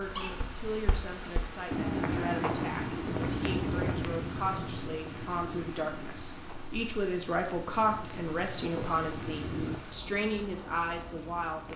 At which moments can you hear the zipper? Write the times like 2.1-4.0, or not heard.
not heard.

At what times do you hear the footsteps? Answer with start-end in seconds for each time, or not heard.
0.2-9.8.